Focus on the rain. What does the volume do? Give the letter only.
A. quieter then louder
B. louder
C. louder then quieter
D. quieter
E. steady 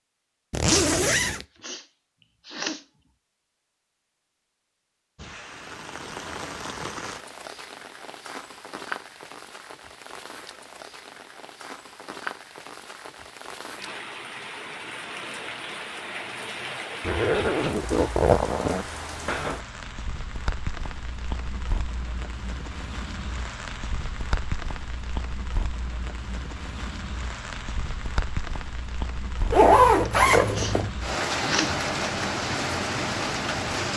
B.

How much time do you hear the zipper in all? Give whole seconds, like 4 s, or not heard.
4 s.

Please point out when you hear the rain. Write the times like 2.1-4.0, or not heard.
5.2-33.9.